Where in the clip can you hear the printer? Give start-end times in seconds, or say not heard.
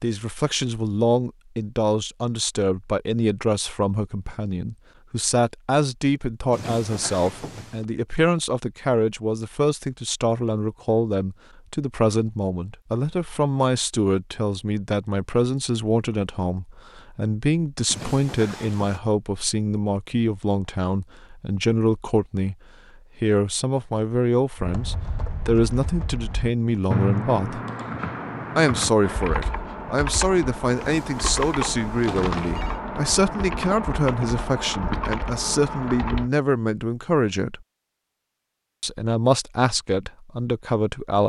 not heard.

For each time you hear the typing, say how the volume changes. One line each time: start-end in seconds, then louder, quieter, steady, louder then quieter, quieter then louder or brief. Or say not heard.
24.6-36.3 steady.